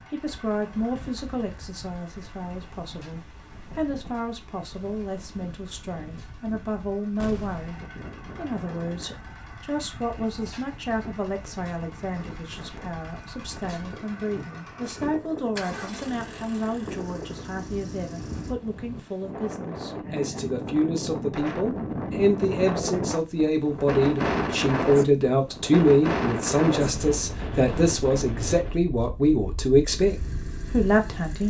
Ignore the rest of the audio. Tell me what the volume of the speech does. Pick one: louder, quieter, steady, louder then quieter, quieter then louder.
louder.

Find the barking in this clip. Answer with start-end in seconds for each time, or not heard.
not heard.